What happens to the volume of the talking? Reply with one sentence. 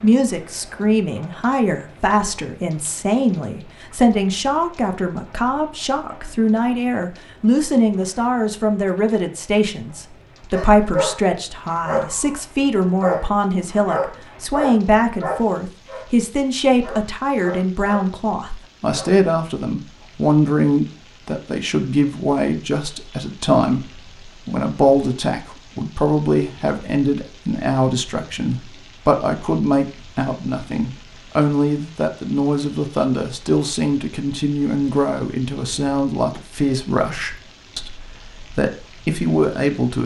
The volume of the talking stays about the same.